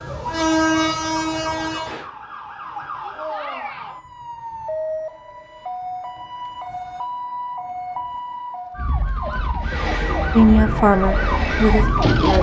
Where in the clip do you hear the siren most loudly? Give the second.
12 s.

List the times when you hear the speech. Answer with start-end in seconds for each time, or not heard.
10.3-12.3.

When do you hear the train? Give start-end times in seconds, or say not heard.
0.0-2.0, 9.6-12.3.